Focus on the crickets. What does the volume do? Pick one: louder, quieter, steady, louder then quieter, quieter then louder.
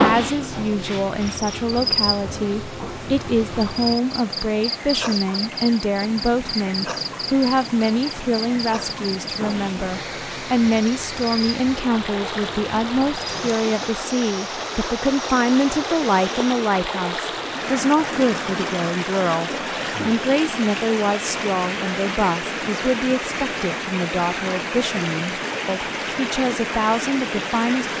quieter.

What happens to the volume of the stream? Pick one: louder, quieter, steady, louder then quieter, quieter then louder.
louder.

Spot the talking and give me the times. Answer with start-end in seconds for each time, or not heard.
0.0-27.9.